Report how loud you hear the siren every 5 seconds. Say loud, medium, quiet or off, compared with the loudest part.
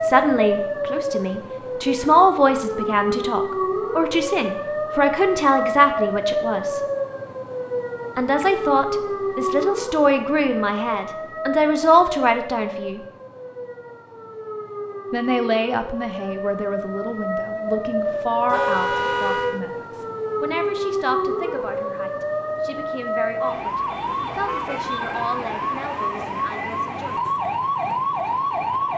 loud, loud, medium, loud, loud, loud.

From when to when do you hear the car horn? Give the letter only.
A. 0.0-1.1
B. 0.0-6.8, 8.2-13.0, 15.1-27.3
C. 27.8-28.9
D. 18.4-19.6
D.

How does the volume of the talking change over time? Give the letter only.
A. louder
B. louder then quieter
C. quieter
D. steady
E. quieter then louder
C.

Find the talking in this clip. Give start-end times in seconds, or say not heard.
0.0-6.8, 8.2-13.0, 15.1-27.3.